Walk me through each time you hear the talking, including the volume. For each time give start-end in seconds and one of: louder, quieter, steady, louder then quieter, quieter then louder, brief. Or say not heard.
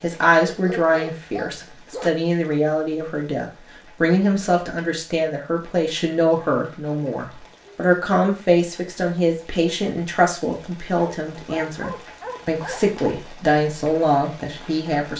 0.0-15.1 steady.